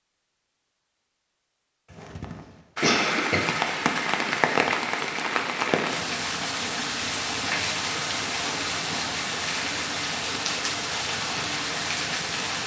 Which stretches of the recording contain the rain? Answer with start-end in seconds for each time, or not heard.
2.8-12.6.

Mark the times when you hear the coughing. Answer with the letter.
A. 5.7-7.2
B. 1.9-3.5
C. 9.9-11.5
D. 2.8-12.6
B.